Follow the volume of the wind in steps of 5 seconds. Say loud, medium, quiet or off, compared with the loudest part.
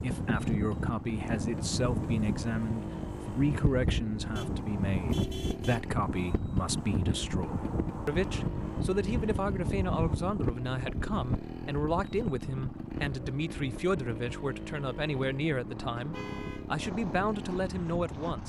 loud, loud, loud, medium.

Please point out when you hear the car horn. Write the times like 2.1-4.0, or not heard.
4.3-5.8, 15.9-16.7.